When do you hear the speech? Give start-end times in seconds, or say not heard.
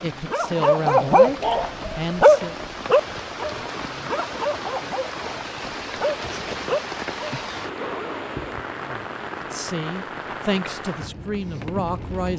0.0-2.5, 8.8-12.3.